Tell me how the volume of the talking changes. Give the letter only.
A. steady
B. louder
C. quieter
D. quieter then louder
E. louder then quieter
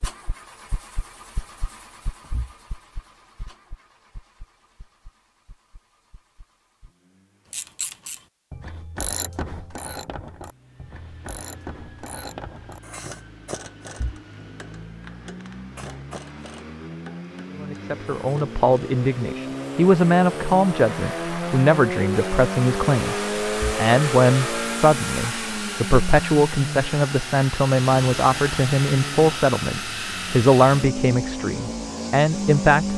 A.